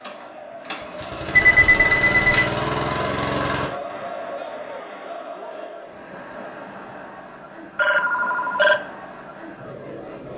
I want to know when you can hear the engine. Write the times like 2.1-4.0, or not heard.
0.0-3.7.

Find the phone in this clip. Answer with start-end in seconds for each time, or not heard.
1.3-2.3, 7.8-8.8.